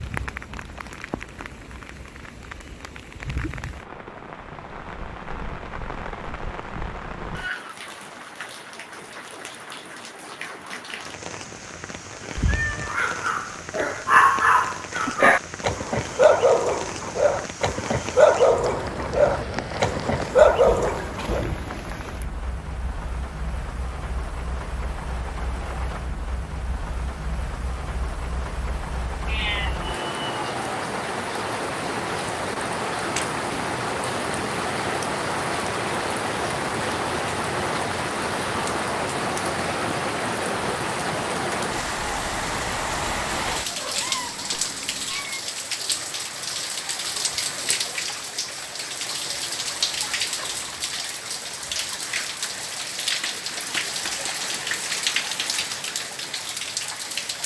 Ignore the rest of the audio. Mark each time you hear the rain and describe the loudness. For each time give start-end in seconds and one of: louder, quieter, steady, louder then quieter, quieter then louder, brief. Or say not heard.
0.0-57.4 louder.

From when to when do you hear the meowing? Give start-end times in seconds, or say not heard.
12.3-12.9, 29.2-30.6, 43.5-45.4.